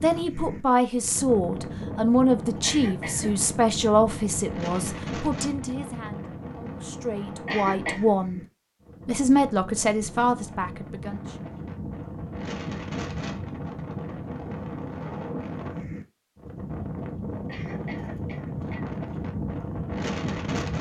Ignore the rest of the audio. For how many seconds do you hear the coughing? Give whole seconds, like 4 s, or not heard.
3 s.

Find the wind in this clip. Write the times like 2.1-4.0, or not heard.
0.0-20.7.